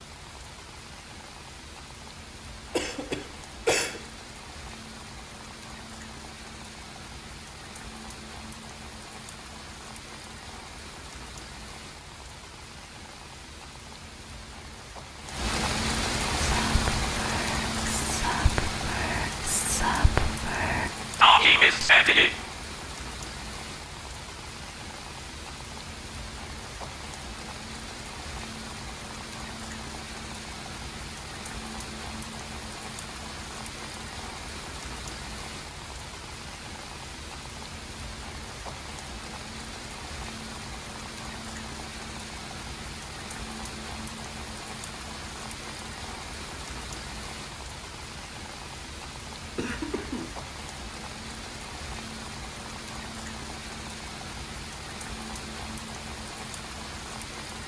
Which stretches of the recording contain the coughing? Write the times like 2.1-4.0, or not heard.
2.7-4.0, 49.5-50.3.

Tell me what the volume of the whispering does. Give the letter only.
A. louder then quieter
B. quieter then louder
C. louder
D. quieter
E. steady
C.